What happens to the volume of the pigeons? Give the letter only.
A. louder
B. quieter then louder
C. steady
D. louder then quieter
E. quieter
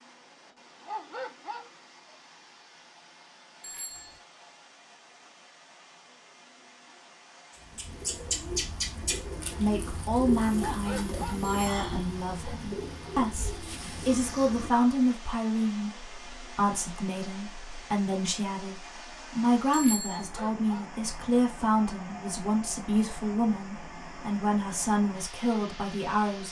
E.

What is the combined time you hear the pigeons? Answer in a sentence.
You can hear the pigeons for 8 seconds altogether.